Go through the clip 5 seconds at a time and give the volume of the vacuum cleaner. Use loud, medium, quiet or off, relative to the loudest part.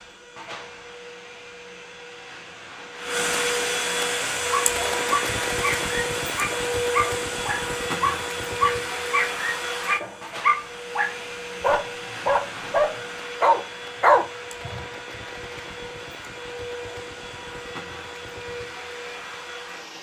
loud, loud, medium, medium.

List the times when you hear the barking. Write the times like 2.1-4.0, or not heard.
4.5-14.8.